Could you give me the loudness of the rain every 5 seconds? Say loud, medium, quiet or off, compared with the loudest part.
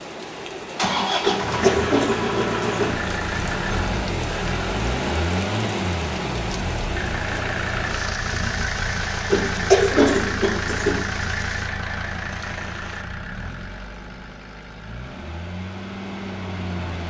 loud, loud, medium, off.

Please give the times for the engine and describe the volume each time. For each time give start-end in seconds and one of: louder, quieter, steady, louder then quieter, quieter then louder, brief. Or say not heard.
0.2-17.0 quieter.